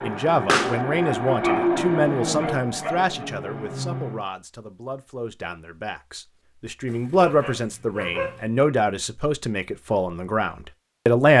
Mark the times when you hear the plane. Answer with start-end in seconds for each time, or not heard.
0.0-4.2.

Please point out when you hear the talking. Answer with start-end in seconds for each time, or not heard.
0.0-11.3.